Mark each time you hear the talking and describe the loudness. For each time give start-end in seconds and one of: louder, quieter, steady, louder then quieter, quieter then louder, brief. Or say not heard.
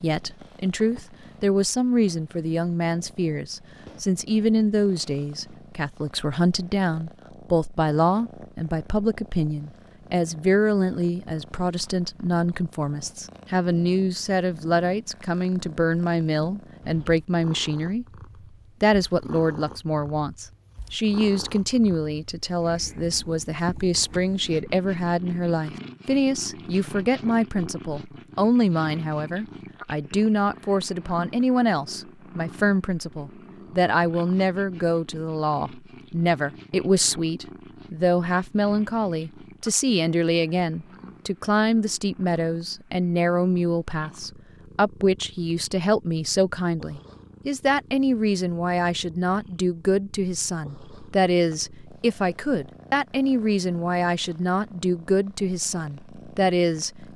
0.0-18.1 steady
18.8-57.1 steady.